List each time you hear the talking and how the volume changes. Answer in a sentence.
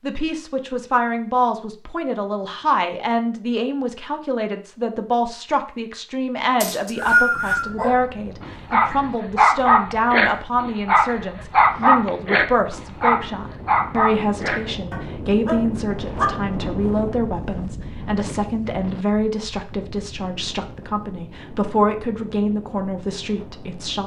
You can hear the talking from 0.0 to 24.0 s, at a steady volume.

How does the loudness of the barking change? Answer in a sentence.
The loudness of the barking goes down.